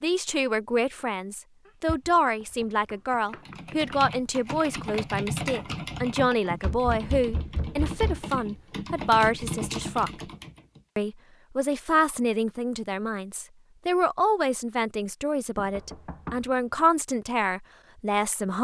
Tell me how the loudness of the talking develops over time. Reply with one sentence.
The volume of the talking stays about the same.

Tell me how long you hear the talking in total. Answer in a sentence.
You can hear the talking for 18 seconds altogether.